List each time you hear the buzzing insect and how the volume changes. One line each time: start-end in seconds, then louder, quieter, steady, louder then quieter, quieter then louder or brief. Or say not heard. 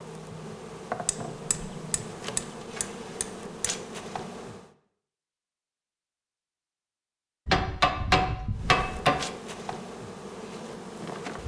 0.0-4.7 steady
8.5-11.4 brief.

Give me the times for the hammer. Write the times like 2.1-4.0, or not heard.
1.1-3.8, 7.5-9.2.